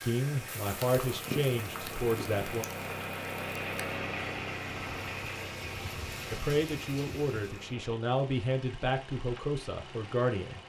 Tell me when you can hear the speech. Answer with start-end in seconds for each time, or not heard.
0.0-2.6, 6.3-10.6.